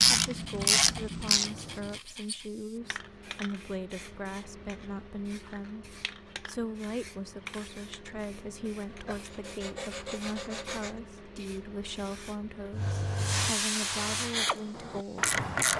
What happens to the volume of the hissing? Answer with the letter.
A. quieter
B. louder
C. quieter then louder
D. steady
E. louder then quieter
B.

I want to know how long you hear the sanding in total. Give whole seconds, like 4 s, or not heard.
4 s.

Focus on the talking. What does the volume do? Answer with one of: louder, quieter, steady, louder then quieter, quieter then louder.
steady.